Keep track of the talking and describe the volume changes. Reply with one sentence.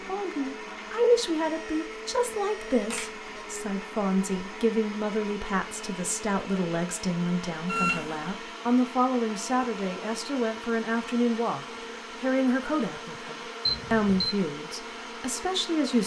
The volume of the talking stays about the same.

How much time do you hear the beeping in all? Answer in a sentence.
You can hear the beeping for 3 seconds altogether.